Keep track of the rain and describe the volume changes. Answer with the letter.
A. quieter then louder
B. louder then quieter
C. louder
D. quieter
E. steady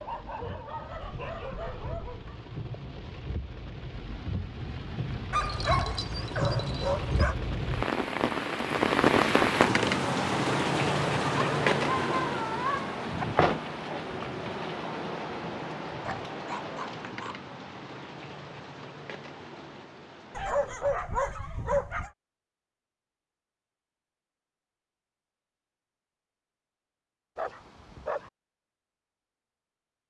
B.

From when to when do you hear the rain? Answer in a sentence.
You can hear the rain from 0.0 to 20.9 s.